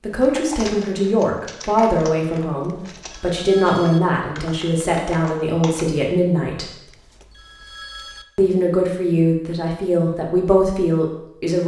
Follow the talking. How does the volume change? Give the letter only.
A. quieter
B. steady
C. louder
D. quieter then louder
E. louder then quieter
B.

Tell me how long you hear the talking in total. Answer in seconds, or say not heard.
10 s.